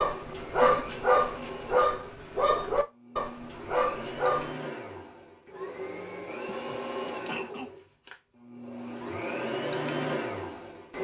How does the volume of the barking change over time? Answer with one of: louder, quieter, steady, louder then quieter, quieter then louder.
quieter.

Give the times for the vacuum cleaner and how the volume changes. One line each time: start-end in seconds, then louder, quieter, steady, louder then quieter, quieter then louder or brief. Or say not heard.
0.1-11.0 louder.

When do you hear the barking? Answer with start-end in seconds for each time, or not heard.
0.0-4.5.